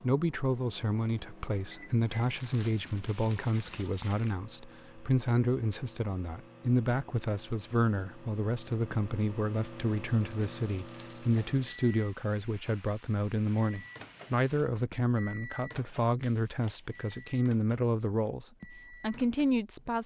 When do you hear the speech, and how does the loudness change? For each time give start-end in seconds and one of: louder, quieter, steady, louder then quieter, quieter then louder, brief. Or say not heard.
0.0-20.0 steady.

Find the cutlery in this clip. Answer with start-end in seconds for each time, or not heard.
not heard.